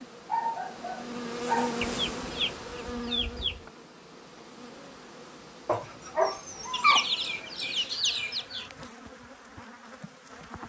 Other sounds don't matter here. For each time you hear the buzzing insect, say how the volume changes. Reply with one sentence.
The buzzing insect can be heard from 0.0 to 10.6 s, getting quieter.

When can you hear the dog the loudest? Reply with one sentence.
The loudest moment of the dog is at 7 seconds.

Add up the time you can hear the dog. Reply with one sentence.
You can hear the dog for 3 seconds altogether.